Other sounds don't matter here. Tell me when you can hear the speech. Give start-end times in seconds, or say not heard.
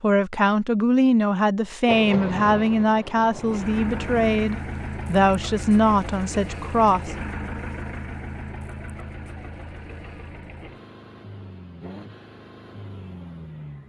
0.0-7.2.